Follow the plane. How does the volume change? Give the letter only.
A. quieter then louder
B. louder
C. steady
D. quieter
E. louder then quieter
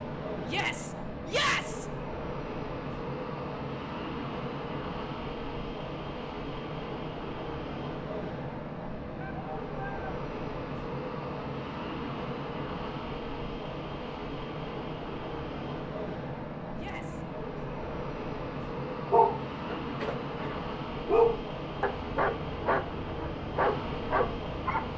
C.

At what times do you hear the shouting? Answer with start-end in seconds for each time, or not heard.
0.5-1.9, 9.2-10.1, 16.8-17.6.